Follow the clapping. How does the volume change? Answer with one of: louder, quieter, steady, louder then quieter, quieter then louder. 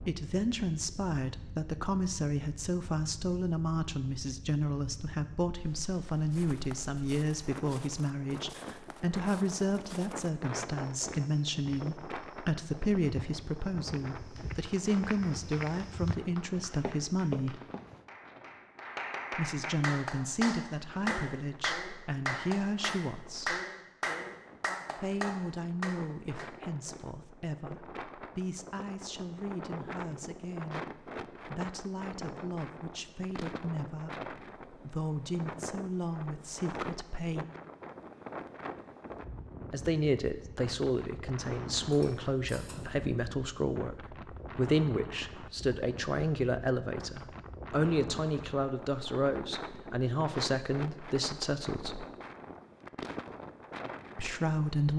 louder.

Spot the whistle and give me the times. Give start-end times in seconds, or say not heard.
not heard.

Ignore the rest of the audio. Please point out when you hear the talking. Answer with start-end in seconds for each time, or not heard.
0.1-17.6, 19.4-23.6, 24.9-37.5, 39.7-52.0, 54.1-54.9.